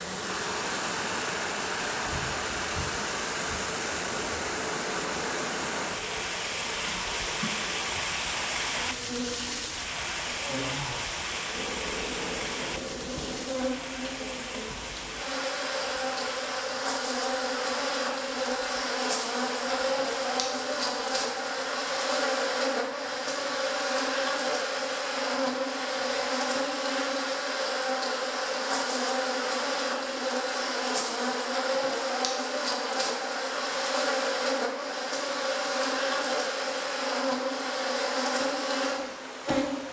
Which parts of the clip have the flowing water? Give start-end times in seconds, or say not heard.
0.0-39.8.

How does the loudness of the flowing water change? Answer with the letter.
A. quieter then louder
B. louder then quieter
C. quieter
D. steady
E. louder
C.